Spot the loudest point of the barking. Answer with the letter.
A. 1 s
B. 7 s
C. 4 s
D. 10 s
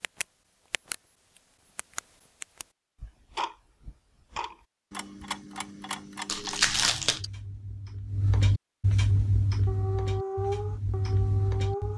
D.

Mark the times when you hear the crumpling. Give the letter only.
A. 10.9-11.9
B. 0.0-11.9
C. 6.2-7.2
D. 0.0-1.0
C.